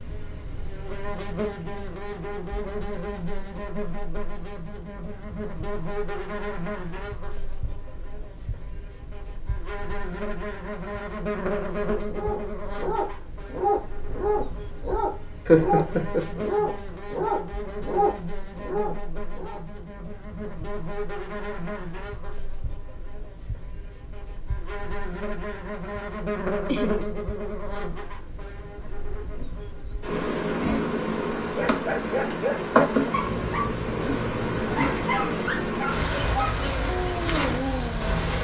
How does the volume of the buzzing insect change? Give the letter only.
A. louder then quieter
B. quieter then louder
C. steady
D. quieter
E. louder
E.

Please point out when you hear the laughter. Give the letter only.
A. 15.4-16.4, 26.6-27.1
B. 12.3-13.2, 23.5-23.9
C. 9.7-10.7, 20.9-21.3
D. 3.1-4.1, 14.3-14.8
A.